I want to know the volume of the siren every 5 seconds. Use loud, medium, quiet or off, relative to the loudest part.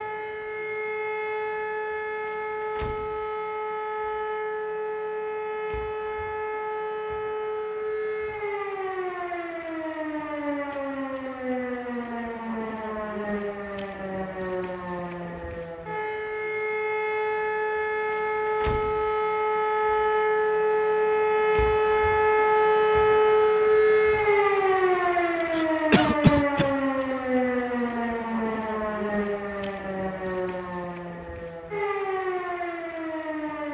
medium, medium, medium, medium, loud, medium, medium.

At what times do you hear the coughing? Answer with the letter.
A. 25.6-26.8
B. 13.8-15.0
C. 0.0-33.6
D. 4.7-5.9
A.